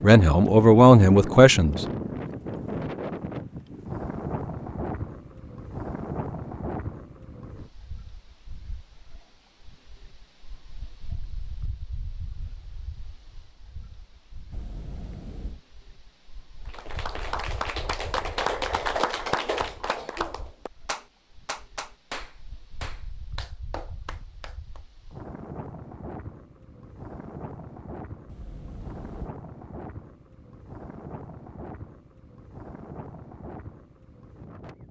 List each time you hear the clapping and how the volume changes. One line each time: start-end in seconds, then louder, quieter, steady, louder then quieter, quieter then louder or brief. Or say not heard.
16.6-24.8 quieter.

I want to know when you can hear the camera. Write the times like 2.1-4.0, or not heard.
14.5-15.6, 28.2-29.4.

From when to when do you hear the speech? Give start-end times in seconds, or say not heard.
0.0-1.9.